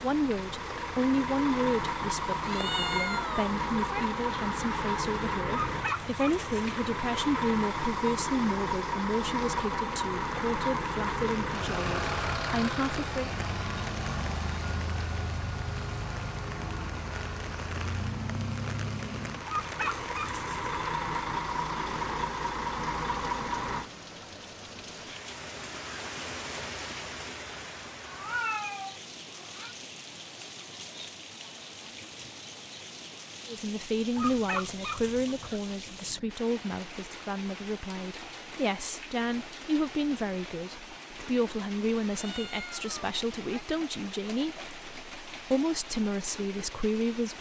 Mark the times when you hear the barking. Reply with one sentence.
You can't hear the barking here.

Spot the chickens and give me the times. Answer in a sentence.
You can hear the chickens from 5.7 to 6.8 s, from 19.4 to 20.8 s and from 34.1 to 35.6 s.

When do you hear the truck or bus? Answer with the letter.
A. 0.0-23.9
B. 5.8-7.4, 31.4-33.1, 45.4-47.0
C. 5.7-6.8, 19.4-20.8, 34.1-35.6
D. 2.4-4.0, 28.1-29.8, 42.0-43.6
A.